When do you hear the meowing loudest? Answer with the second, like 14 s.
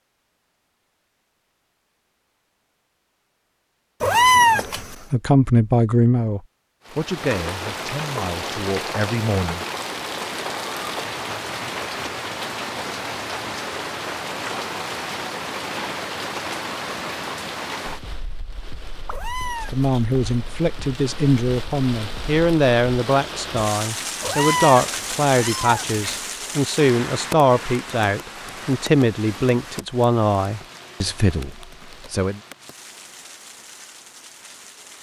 4 s.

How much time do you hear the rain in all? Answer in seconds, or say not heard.
28 s.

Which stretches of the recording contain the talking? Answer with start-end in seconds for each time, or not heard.
4.5-9.6, 19.7-32.4.